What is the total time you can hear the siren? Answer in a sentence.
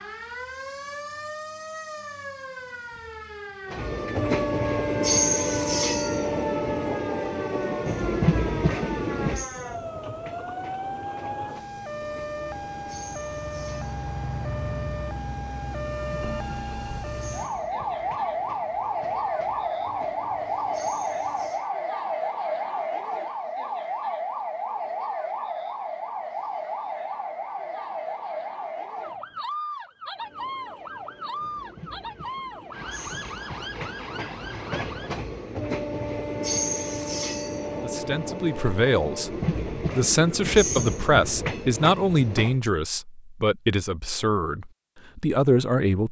The siren can be heard for 35 seconds in total.